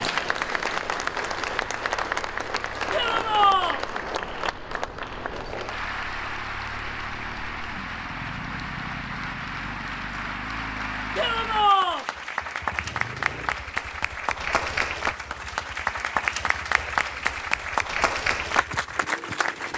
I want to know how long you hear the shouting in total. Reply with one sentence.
The shouting can be heard for 2 seconds in total.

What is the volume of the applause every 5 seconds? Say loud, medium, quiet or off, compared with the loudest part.
loud, medium, loud, loud.